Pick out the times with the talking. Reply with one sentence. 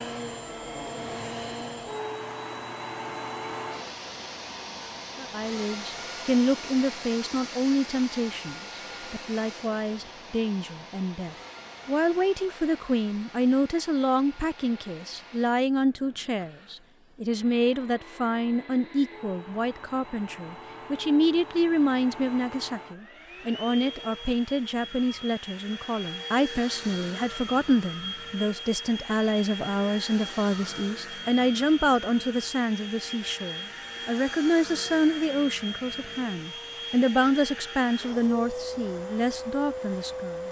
You can hear the talking from 5.2 to 40.4 s.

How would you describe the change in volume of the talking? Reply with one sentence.
The volume of the talking stays about the same.